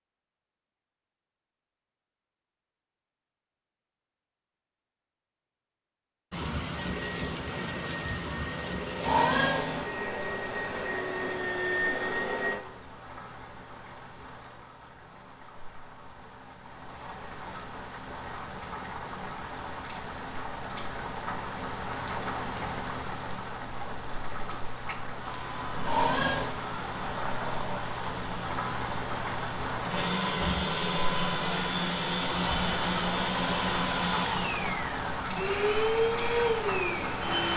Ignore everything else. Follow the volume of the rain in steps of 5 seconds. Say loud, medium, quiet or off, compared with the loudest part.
off, loud, medium, medium, loud, loud, loud, loud.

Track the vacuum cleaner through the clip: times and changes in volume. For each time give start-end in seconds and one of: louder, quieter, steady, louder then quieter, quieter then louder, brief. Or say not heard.
6.8-12.7 louder
25.1-37.5 louder.